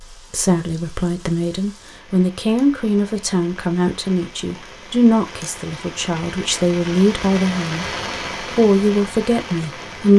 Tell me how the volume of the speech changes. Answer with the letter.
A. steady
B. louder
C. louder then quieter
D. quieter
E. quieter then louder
A.